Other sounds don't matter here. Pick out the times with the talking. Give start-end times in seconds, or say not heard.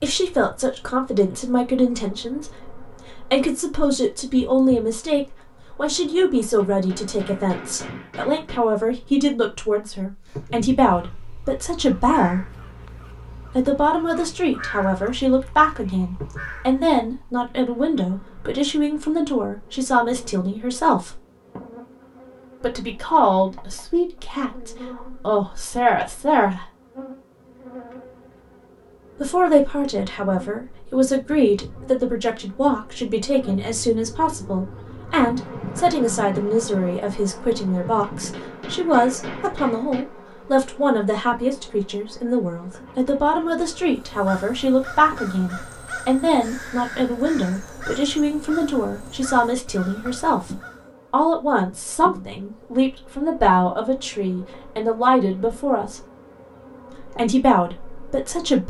0.0-12.4, 13.6-21.2, 22.6-26.6, 29.2-56.0, 57.1-58.6.